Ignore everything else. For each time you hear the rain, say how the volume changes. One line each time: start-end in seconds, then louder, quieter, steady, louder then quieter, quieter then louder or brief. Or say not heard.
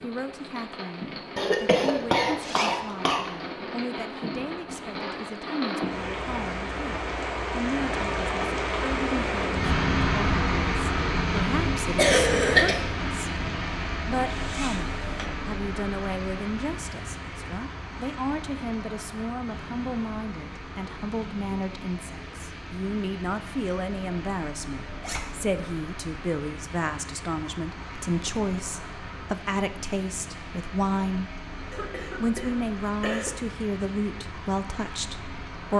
0.0-35.7 louder then quieter.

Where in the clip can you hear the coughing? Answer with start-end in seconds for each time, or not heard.
1.4-3.2, 11.9-12.8, 31.7-33.3.